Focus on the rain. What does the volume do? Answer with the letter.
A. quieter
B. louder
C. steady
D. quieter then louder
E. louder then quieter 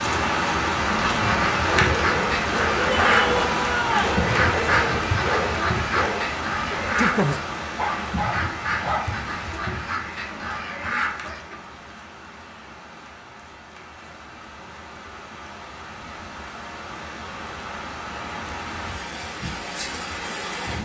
D.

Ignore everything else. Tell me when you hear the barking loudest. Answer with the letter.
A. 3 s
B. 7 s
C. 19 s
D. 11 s
B.